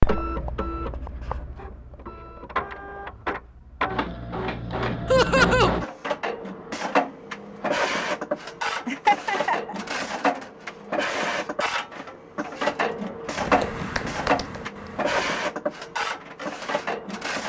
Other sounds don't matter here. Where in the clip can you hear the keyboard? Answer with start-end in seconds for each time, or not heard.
13.3-15.5.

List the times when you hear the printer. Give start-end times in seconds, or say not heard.
0.0-17.4.